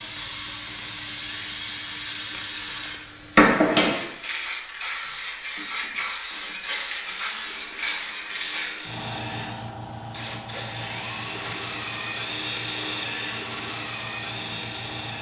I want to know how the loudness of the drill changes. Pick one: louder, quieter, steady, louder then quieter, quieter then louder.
louder.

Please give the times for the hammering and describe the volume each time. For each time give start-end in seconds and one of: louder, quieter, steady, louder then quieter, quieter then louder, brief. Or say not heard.
not heard.